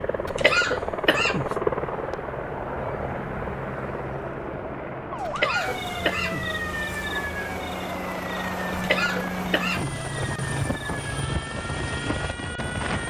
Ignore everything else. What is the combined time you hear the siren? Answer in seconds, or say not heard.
8 s.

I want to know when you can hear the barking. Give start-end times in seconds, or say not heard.
not heard.